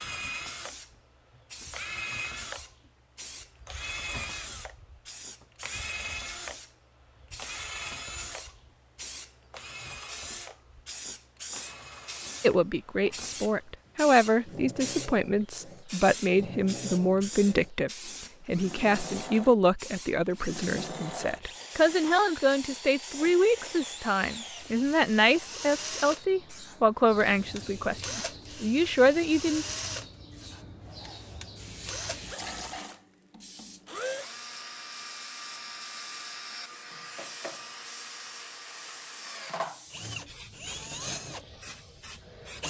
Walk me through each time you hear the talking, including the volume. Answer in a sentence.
You can hear the talking from 12.4 to 29.6 s, at a steady volume.